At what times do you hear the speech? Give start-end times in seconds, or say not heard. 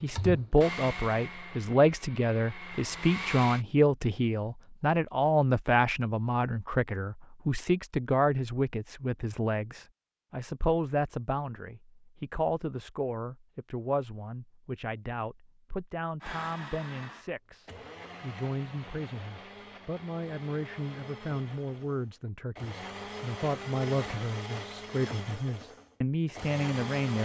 0.0-27.2.